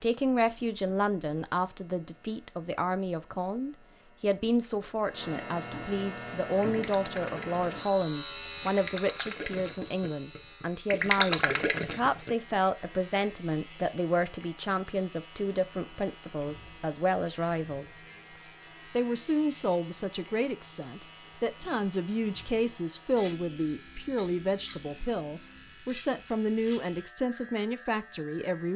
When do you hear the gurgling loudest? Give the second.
11 s.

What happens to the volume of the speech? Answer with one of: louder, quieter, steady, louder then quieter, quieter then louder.
steady.